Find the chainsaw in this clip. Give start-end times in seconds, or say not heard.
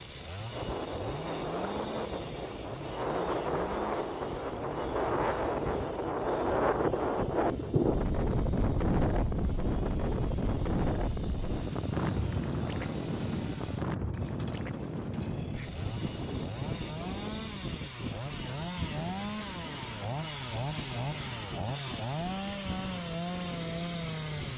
0.0-24.5.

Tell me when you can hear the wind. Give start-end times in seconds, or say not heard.
0.0-24.5.